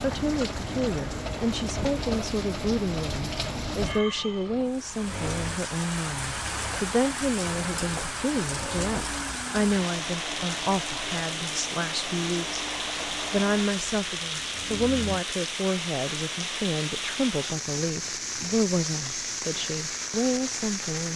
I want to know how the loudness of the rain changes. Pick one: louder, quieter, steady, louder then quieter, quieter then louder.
steady.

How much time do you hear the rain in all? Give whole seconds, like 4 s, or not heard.
21 s.